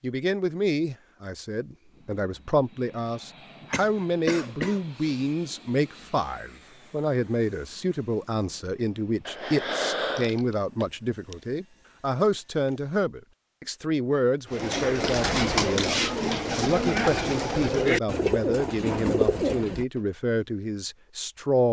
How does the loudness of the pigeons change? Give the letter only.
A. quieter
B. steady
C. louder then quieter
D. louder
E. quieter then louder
B.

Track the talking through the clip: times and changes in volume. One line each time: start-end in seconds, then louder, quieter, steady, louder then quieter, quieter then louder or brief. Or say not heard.
0.0-21.6 steady.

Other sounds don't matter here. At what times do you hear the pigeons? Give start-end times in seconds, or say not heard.
14.5-20.0.